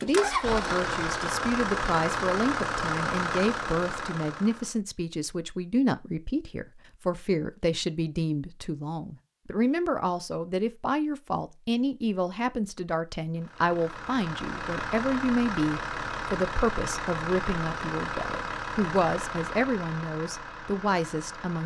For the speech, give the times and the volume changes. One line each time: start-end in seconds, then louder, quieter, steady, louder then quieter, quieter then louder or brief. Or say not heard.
0.0-21.6 steady.